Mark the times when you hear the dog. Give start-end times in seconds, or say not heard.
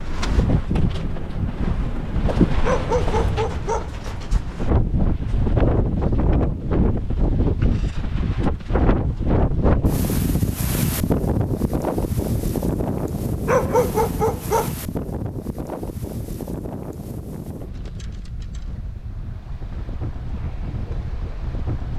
2.6-3.9, 13.4-14.8.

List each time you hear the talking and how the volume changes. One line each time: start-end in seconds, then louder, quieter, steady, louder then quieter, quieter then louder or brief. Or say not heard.
not heard.